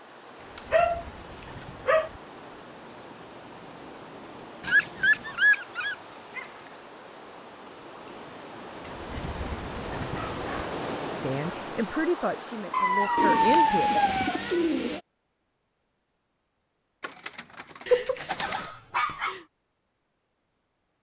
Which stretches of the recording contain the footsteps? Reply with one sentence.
You can't hear the footsteps here.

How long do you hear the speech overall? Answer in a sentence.
You can hear the speech for 3 seconds altogether.